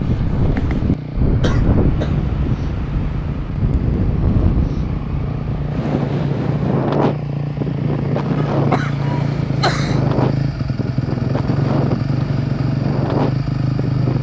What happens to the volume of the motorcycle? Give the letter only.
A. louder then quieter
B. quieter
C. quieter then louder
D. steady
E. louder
E.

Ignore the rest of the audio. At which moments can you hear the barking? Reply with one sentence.
The barking can't be heard in this clip.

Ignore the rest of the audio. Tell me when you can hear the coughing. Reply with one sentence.
The coughing can be heard from 1.4 to 2.3 s and from 8.3 to 10.1 s.